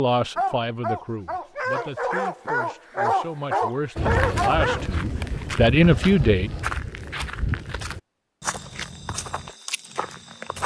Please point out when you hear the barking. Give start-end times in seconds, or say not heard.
0.3-5.5.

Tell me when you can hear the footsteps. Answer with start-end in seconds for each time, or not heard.
4.0-10.6.